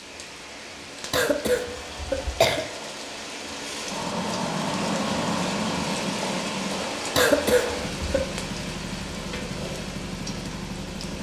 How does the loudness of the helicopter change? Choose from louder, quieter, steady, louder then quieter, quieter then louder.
louder then quieter.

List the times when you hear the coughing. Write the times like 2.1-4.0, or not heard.
1.1-2.6, 7.2-8.2.